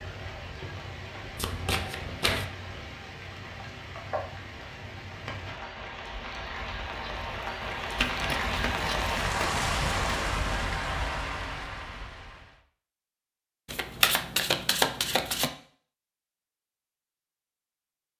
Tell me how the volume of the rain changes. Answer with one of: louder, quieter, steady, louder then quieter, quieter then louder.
louder.